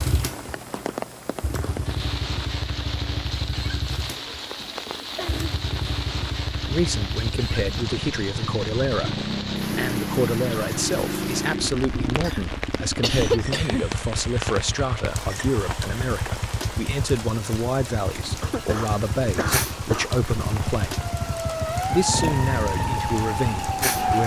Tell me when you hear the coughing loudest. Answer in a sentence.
The volume of the coughing peaks at 13 seconds.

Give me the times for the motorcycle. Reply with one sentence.
You can hear the motorcycle from 0.0 to 23.9 s.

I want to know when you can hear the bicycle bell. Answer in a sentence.
The bicycle bell can't be heard in this clip.